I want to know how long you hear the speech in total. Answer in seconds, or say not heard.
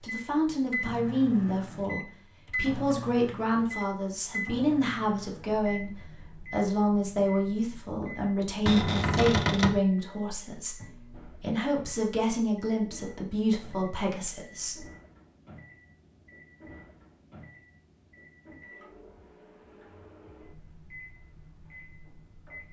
15 s.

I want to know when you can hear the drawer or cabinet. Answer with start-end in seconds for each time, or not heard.
8.7-9.8.